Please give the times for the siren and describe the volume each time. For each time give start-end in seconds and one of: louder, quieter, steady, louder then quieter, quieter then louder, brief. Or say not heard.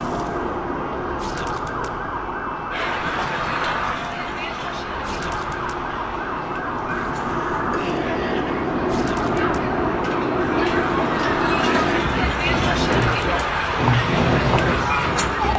0.0-15.5 steady.